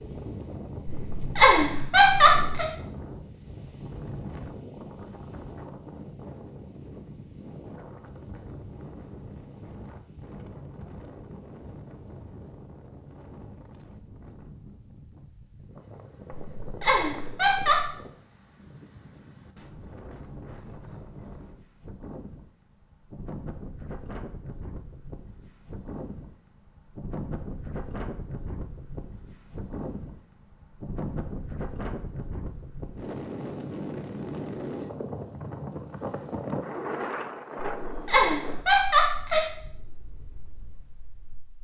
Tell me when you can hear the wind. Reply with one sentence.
You can hear the wind from 0.0 to 41.5 s.